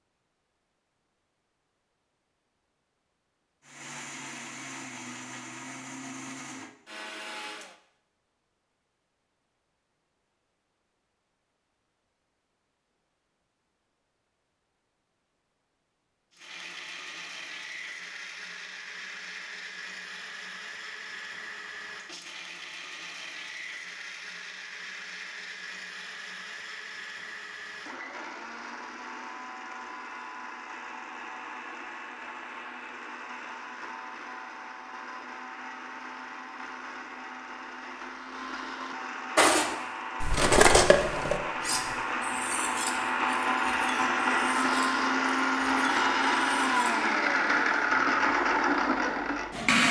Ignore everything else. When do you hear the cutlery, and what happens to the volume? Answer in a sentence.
The cutlery can be heard from 39.4 to 47.1 s, getting quieter.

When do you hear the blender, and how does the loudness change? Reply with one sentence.
You can hear the blender from 3.6 to 7.8 s, at a steady volume; and from 16.3 to 49.8 s, getting louder.